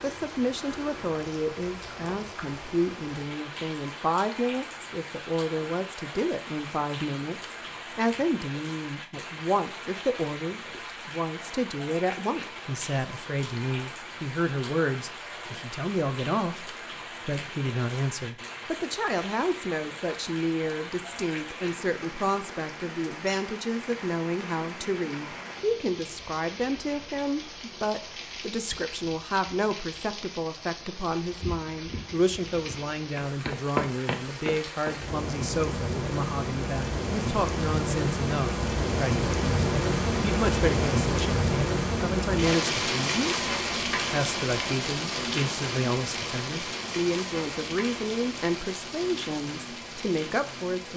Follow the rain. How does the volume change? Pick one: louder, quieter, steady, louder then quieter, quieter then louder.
louder.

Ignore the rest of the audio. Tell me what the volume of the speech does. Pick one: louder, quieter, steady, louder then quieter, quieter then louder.
steady.